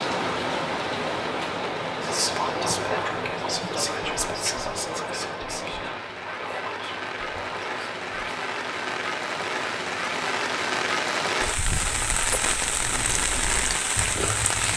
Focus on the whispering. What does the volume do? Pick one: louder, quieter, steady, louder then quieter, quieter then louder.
quieter.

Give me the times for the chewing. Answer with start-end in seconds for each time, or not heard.
11.7-14.7.